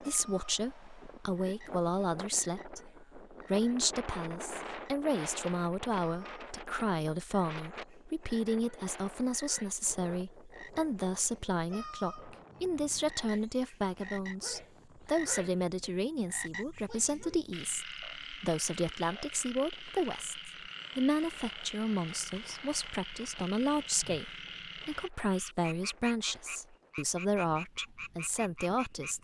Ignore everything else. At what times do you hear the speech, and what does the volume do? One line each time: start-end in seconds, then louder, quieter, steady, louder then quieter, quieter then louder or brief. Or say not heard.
0.0-29.1 steady.